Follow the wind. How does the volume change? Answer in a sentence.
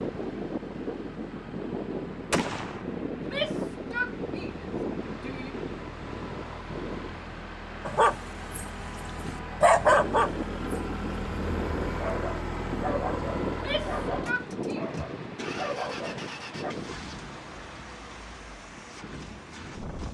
The loudness of the wind goes down.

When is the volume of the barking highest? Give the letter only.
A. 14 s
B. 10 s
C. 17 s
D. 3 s
B.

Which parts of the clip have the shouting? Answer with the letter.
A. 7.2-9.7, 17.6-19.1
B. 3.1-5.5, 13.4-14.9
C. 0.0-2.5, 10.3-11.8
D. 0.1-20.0
B.